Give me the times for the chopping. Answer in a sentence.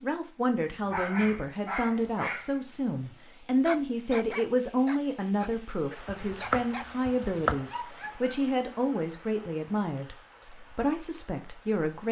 You can hear the chopping from 6.0 to 7.7 s.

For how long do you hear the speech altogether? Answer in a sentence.
The speech can be heard for 12 seconds in total.